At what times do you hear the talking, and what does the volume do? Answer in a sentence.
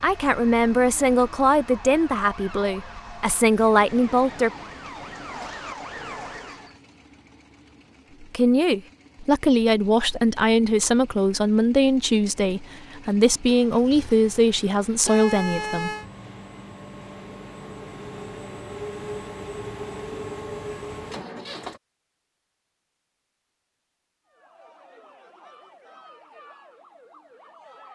You can hear the talking from 0.0 to 4.5 s, getting quieter then louder; and from 8.2 to 15.9 s, at a steady volume.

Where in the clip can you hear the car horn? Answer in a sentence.
The car horn can be heard from 15.1 to 16.1 s.